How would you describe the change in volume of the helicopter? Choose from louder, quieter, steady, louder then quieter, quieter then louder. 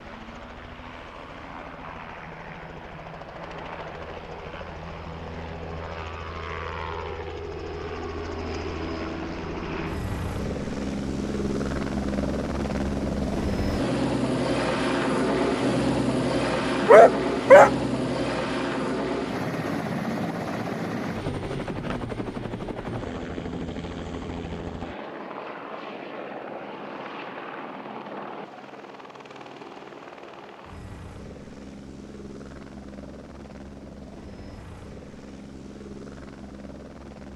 louder then quieter.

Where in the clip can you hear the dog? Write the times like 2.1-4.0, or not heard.
16.8-17.7.